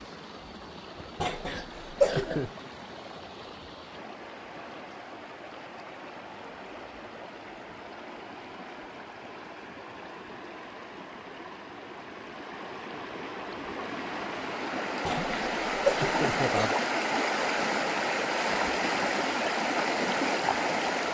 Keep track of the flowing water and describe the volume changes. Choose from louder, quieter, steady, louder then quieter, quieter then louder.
louder.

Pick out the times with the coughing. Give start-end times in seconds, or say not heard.
1.2-2.5, 15.1-16.8.